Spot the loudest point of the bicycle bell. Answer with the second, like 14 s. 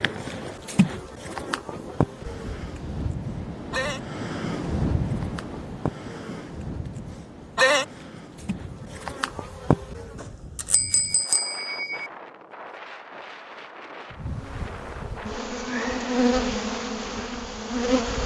11 s.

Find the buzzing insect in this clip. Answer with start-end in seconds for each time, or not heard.
0.0-10.2, 14.1-18.2.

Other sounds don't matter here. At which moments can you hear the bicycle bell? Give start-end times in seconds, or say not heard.
2.4-3.1, 10.2-12.1.